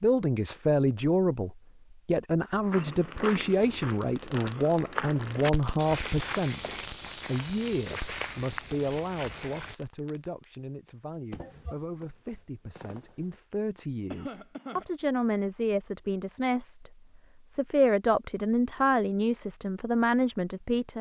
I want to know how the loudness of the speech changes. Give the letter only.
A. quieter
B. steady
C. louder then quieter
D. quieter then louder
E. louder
D.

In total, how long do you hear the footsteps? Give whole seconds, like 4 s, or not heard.
7 s.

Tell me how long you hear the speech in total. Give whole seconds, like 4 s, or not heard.
20 s.